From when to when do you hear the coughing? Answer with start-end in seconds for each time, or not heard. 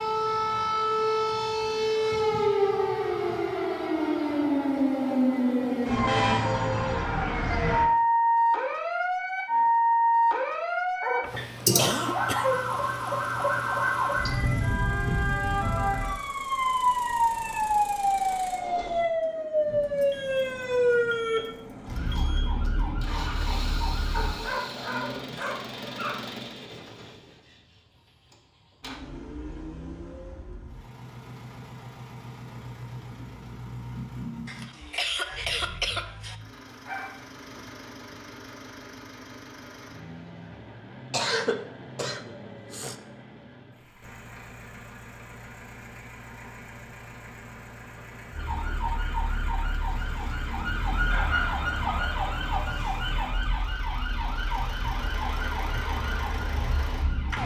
11.2-12.6, 34.5-36.4, 41.1-43.0.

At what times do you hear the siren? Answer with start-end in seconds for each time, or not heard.
0.0-24.4, 48.3-57.4.